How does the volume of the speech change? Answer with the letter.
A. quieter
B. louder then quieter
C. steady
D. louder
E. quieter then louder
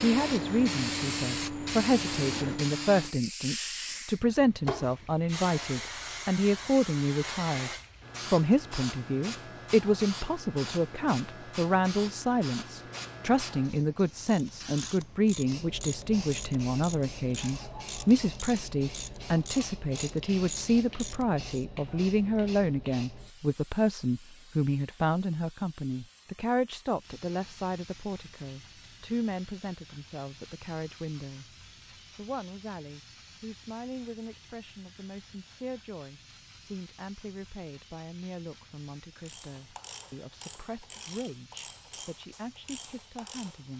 A.